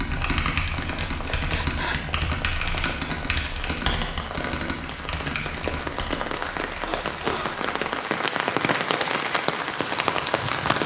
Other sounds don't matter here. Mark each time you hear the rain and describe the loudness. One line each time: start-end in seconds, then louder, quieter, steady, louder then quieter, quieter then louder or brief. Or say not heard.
0.0-10.8 louder.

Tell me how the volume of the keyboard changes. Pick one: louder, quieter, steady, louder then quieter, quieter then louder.
quieter.